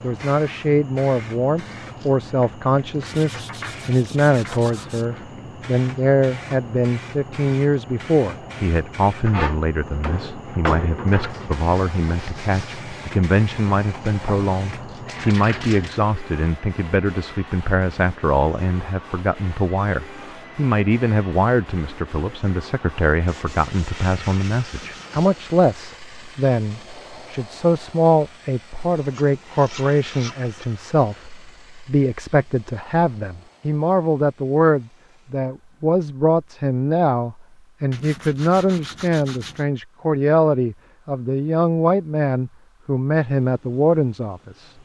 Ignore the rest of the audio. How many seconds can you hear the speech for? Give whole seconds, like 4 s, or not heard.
45 s.